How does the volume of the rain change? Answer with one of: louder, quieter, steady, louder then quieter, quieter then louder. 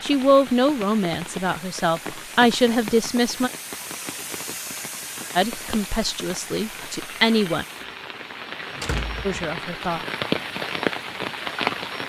louder.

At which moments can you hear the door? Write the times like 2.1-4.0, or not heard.
8.7-9.4.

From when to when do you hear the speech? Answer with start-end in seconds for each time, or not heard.
0.0-3.5, 5.3-7.7, 9.2-10.1.